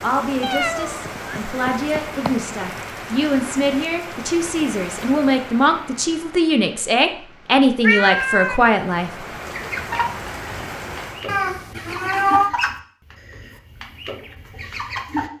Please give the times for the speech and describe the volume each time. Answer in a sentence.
The speech can be heard from 0.0 to 9.1 s, getting louder.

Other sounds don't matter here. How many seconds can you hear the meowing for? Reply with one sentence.
The meowing can be heard for 4 seconds in total.